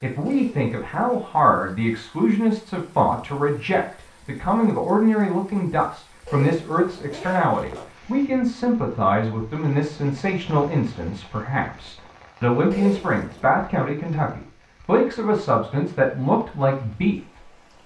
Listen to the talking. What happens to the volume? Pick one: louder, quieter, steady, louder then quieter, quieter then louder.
steady.